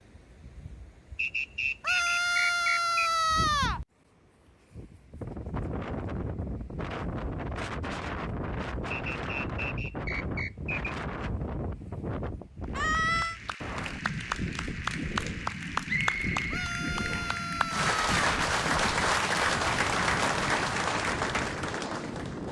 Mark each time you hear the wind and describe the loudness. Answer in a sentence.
You can hear the wind from 0.0 to 22.4 s, getting louder.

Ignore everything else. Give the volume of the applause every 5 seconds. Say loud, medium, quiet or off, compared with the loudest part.
off, off, medium, loud, loud.